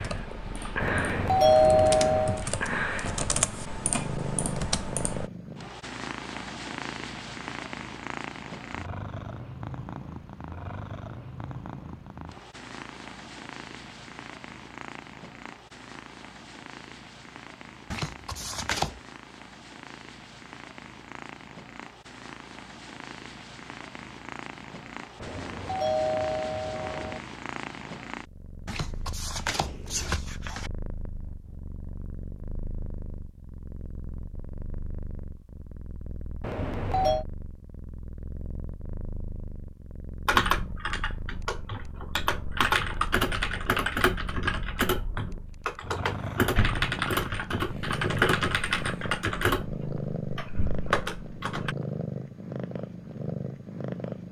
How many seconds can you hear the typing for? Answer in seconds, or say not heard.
17 s.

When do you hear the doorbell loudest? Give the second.
2 s.